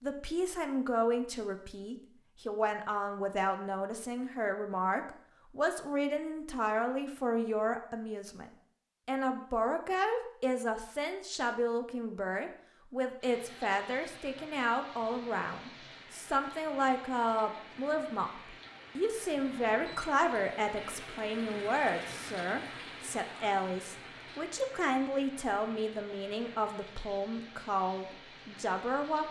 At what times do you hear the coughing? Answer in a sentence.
The coughing can't be heard in this clip.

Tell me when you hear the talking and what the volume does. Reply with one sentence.
The talking can be heard from 0.0 to 29.2 s, at a steady volume.